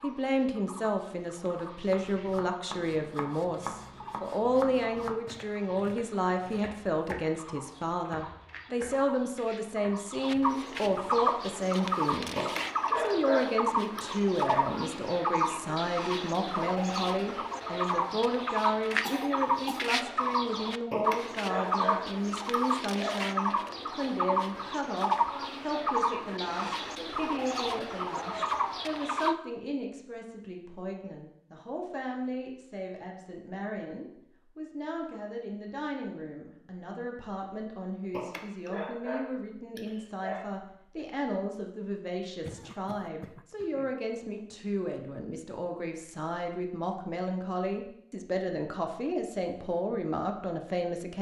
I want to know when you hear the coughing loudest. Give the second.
19 s.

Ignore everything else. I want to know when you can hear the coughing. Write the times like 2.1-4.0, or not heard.
19.0-19.9, 42.5-44.0.